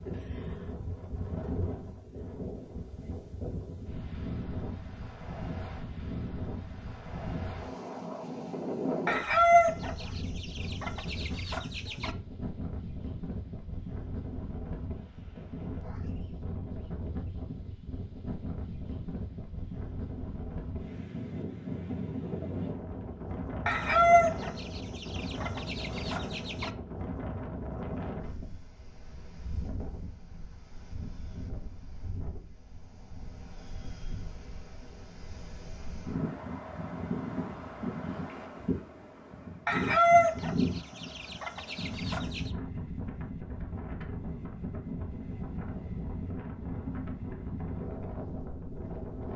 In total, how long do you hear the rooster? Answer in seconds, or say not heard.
9 s.